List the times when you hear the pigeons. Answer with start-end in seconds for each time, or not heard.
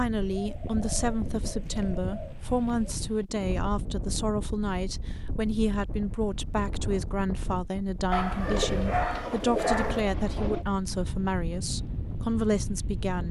0.2-3.0, 8.4-10.7.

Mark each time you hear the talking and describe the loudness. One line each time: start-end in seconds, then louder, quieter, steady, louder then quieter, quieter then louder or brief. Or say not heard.
0.0-13.2 steady.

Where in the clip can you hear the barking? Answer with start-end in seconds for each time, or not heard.
8.1-10.1.